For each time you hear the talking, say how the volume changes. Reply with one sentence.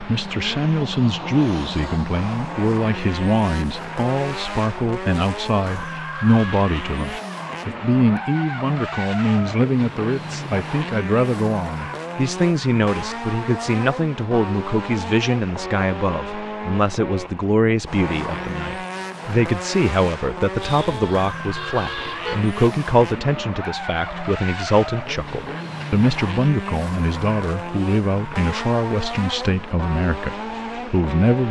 The talking can be heard from 0.0 to 31.4 s, at a steady volume.